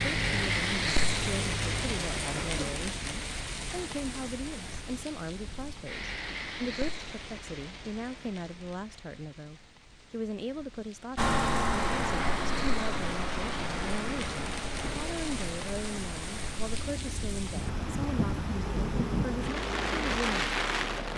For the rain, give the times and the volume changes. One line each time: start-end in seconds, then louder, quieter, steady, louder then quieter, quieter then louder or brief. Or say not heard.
0.0-21.1 quieter then louder.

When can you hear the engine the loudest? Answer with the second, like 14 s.
12 s.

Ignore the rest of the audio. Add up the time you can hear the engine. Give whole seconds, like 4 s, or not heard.
13 s.